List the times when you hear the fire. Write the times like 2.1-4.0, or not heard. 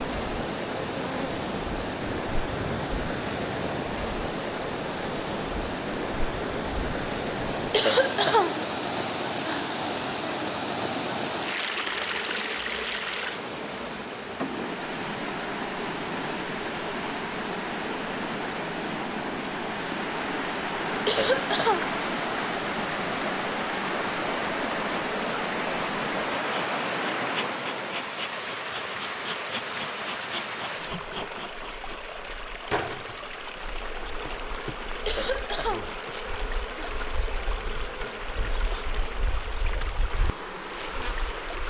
not heard.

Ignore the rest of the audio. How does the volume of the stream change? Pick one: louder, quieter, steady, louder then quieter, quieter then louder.
quieter.